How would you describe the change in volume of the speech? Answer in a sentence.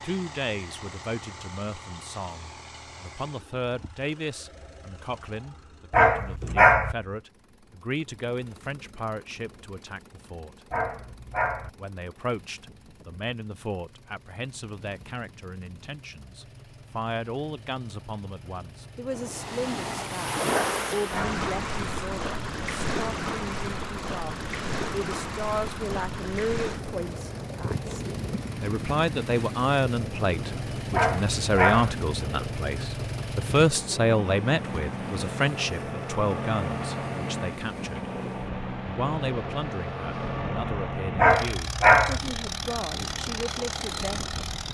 The loudness of the speech goes up, then down.